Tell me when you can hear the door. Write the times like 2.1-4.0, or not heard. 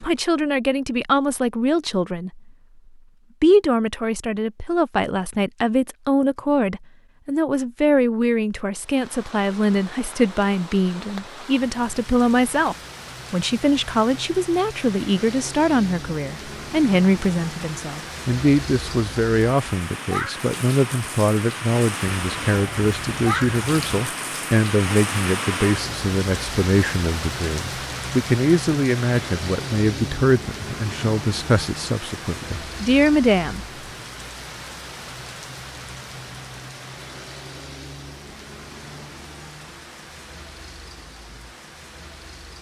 not heard.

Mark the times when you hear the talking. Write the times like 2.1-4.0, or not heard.
0.0-2.4, 3.4-33.6.